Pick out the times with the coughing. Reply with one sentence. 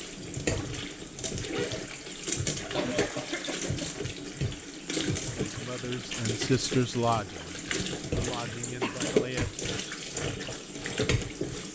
The coughing can be heard from 2.7 to 3.9 s and from 8.8 to 9.6 s.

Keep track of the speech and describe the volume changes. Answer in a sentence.
The volume of the speech goes up, then down.